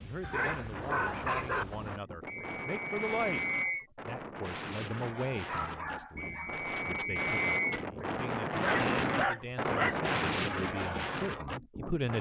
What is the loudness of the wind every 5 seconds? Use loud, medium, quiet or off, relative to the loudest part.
medium, loud, loud.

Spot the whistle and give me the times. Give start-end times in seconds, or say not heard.
2.2-3.9, 6.2-7.8.